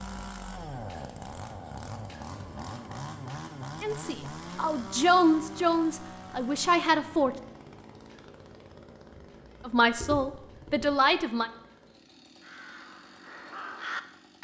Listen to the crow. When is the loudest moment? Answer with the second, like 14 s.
14 s.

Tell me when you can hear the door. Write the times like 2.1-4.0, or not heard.
not heard.